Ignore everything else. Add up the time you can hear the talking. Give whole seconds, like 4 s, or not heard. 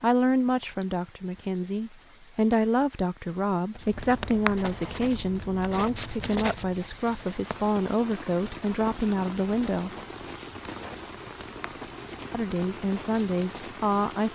12 s.